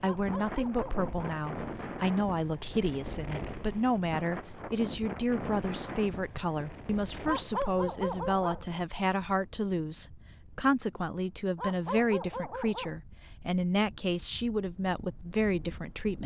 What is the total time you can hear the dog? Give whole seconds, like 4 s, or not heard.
4 s.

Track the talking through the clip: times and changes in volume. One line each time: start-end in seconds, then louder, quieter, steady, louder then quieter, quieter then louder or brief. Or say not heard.
0.0-16.2 steady.